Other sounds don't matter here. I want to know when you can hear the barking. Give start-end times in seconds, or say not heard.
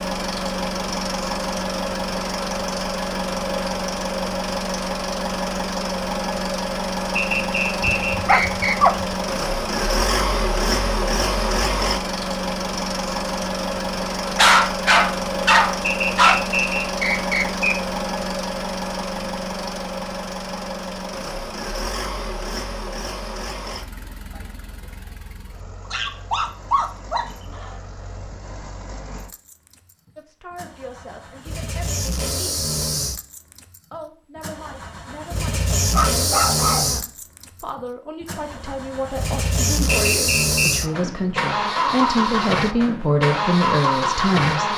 7.8-9.1, 14.3-16.4, 25.9-27.8, 35.9-36.9.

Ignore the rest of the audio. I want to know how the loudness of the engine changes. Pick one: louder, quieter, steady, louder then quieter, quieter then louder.
quieter then louder.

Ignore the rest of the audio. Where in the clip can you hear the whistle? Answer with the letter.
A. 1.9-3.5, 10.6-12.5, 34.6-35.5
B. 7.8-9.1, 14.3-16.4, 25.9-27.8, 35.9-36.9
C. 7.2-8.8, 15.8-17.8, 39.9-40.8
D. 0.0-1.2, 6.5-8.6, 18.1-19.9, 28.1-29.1
C.